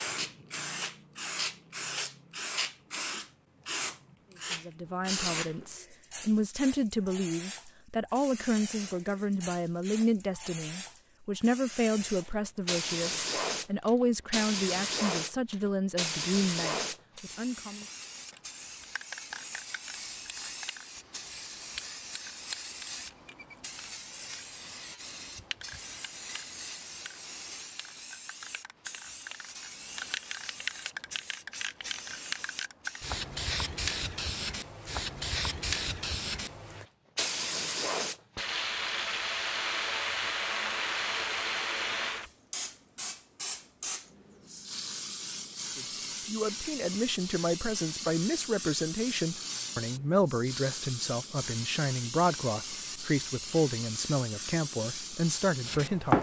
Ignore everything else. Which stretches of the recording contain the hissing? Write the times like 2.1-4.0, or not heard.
0.0-56.1.